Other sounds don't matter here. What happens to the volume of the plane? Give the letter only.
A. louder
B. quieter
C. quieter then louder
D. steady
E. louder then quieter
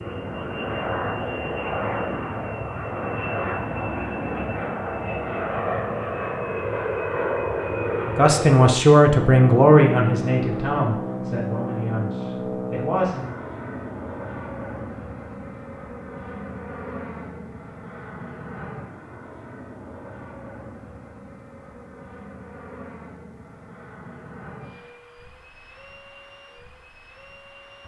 B.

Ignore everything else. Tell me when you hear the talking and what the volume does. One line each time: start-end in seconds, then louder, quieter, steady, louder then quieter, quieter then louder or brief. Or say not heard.
8.1-13.3 quieter.